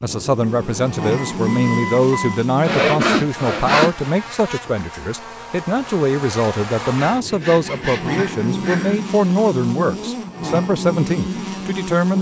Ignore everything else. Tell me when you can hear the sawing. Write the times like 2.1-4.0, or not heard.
2.6-4.2, 6.8-9.0.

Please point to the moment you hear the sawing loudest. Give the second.
3 s.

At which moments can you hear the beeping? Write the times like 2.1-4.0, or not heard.
1.1-2.4.